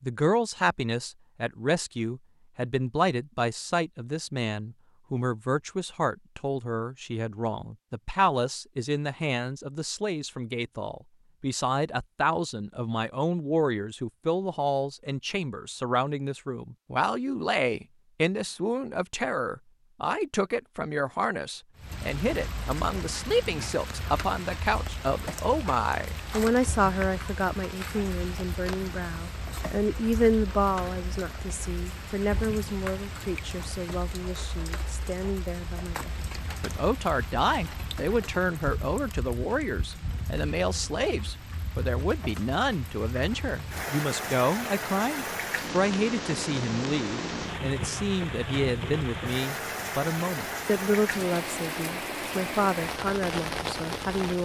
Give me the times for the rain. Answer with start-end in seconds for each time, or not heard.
21.8-54.4.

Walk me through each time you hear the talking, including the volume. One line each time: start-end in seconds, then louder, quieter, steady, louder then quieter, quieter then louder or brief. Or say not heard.
0.0-54.4 steady.